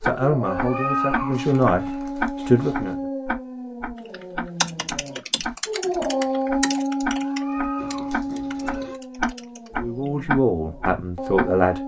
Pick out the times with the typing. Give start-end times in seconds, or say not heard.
4.0-10.2.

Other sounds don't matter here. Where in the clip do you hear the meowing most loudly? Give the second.
1 s.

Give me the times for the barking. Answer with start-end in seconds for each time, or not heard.
0.0-11.8.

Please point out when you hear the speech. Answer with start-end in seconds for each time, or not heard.
0.0-3.0, 9.8-11.8.